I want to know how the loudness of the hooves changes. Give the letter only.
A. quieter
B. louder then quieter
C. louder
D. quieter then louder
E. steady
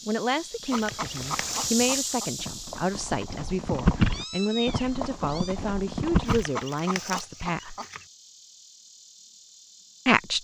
B.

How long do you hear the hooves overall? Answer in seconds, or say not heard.
6 s.